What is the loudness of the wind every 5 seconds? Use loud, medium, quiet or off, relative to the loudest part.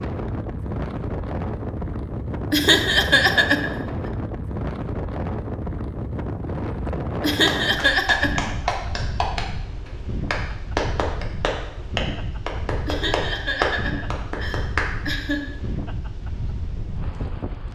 loud, loud, medium, medium.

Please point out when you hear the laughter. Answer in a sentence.
The laughter can be heard from 2.5 to 3.9 s, from 7.2 to 8.6 s and from 12.8 to 15.5 s.